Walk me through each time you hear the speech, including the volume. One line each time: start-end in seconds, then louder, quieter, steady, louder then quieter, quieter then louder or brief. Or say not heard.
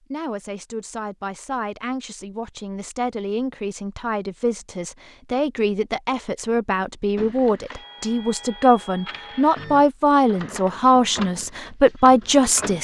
0.1-12.7 louder.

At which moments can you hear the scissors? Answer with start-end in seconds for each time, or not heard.
not heard.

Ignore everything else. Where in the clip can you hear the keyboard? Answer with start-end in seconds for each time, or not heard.
not heard.